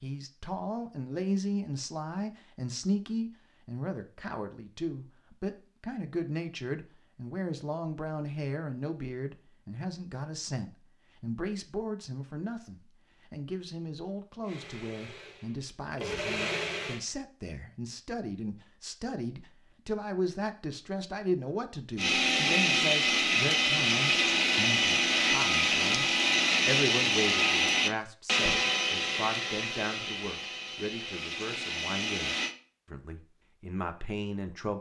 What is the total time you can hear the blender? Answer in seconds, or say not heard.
13 s.